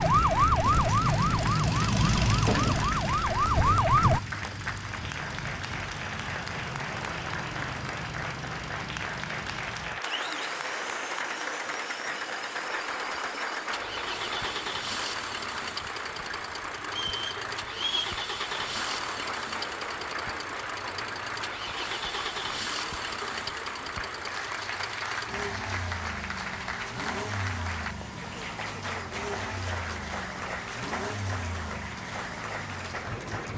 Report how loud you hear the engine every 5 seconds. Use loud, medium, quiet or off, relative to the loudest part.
loud, medium, medium, medium, medium, medium, medium.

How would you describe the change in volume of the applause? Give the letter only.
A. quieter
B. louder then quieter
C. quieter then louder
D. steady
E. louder
D.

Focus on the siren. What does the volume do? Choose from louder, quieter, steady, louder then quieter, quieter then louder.
quieter then louder.